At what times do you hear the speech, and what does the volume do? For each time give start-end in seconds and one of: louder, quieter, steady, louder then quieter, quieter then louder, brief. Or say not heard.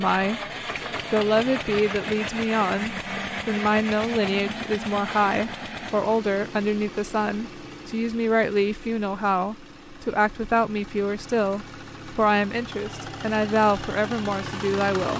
0.0-0.4 brief
1.1-15.1 steady.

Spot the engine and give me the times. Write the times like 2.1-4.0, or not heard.
0.0-15.1.